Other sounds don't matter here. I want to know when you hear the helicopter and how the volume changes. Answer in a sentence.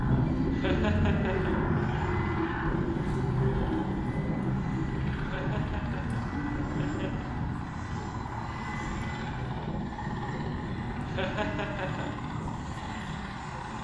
You can hear the helicopter from 0.0 to 13.7 s, getting quieter.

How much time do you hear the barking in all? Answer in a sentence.
The barking can't be heard in this clip.